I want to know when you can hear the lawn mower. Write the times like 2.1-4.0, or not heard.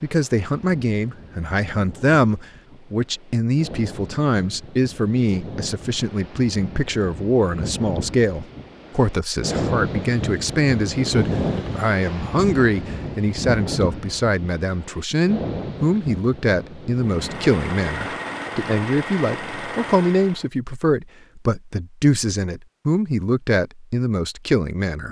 17.0-20.5.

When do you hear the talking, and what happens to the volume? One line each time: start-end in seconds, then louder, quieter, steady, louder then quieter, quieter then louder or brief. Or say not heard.
0.0-25.0 steady.